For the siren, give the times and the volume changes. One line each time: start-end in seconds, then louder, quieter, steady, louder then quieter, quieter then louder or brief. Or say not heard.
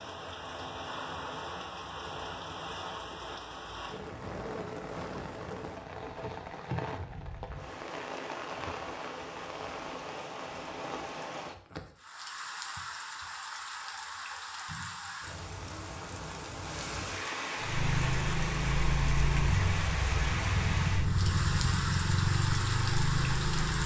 not heard.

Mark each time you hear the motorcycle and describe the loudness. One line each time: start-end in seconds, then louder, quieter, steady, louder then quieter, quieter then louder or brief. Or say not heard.
17.6-23.8 steady.